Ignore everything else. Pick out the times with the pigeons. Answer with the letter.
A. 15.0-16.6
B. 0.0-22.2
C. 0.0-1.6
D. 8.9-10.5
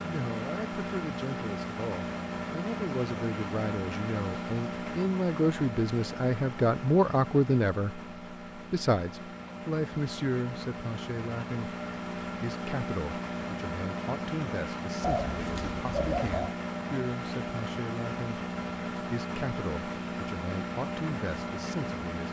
A.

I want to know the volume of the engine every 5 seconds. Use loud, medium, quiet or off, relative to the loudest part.
loud, medium, loud, loud, loud.